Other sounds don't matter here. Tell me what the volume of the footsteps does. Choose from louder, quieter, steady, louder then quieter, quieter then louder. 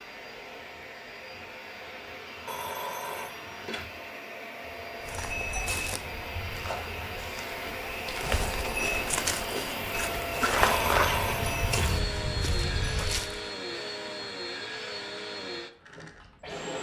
louder then quieter.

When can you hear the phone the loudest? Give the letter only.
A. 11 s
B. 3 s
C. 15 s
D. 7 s
A.